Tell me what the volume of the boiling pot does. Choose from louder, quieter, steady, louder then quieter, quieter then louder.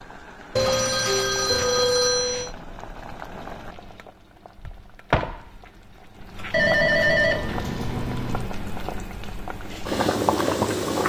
louder.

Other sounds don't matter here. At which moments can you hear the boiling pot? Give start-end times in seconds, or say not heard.
0.0-11.0.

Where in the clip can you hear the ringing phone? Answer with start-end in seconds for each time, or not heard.
0.6-2.5, 6.5-8.5.